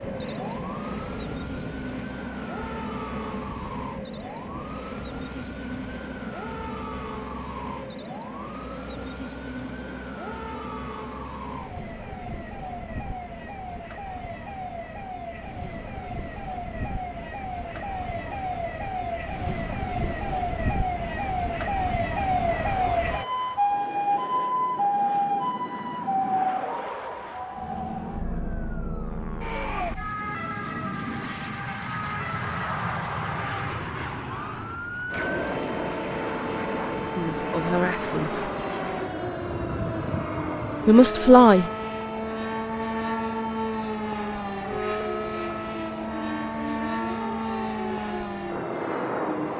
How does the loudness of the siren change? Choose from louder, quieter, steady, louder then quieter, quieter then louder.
louder then quieter.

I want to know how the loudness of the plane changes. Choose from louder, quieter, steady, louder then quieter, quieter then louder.
quieter then louder.